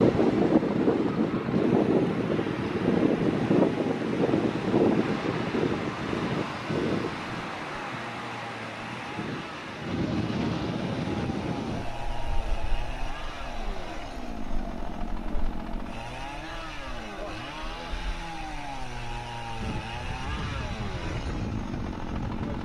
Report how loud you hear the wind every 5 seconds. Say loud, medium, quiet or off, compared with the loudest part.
loud, medium, medium, quiet, quiet.